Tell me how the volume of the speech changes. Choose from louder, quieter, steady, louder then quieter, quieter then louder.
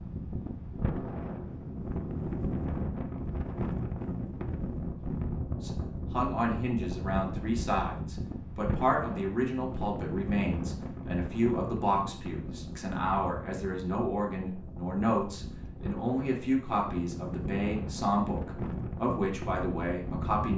steady.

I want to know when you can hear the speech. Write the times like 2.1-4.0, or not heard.
5.6-20.5.